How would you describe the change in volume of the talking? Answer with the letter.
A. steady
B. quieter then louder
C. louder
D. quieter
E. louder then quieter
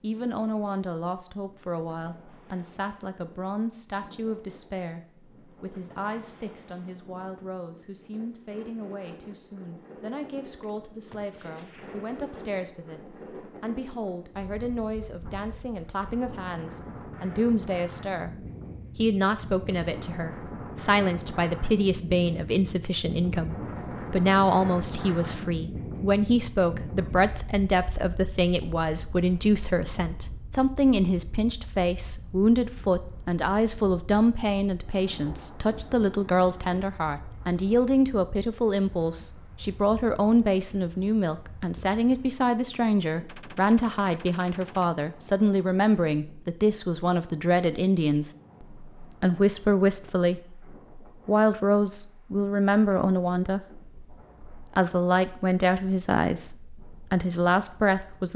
C.